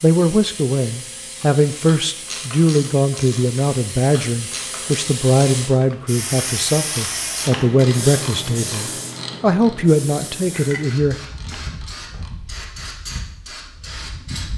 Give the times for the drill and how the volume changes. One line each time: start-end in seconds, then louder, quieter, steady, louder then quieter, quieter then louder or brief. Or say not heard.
not heard.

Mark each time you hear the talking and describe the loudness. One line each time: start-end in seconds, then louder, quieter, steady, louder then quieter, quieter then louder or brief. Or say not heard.
0.0-11.2 steady.